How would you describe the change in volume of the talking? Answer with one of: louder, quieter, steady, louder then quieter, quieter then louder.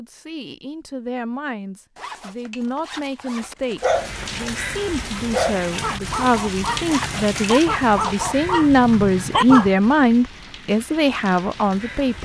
louder.